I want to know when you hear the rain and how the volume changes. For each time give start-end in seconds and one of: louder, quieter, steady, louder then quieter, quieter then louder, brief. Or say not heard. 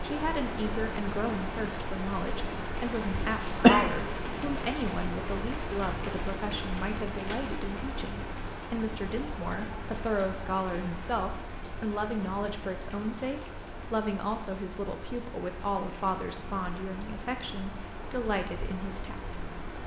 0.0-19.8 quieter.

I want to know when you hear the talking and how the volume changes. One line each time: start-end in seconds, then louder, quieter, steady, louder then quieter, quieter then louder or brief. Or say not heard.
0.0-19.4 steady.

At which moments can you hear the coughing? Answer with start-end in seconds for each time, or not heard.
3.1-3.9.